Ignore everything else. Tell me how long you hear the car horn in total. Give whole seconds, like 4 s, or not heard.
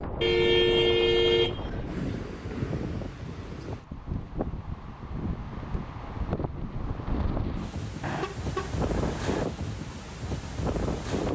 3 s.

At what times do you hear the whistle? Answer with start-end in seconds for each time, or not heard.
not heard.